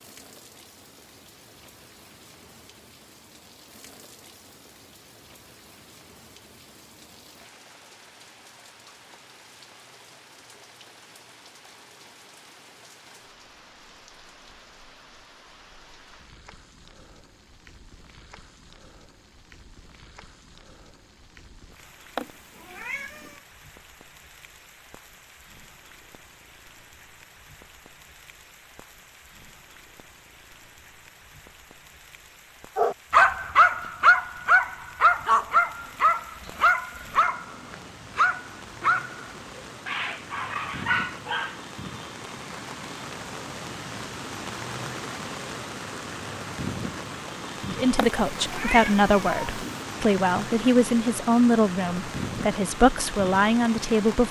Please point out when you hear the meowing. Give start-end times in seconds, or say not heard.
22.1-23.4, 48.0-49.9.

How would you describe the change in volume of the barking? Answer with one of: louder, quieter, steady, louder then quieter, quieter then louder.
quieter.